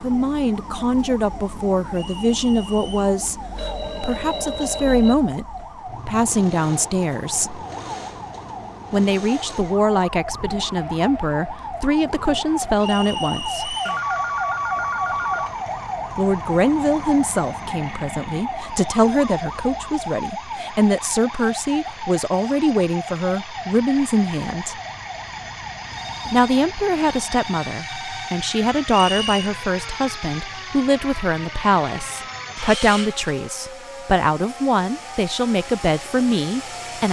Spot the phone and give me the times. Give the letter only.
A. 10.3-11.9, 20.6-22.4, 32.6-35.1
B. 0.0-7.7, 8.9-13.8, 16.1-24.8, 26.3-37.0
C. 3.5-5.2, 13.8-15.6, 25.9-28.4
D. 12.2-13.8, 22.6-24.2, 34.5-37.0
C.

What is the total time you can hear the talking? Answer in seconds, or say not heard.
32 s.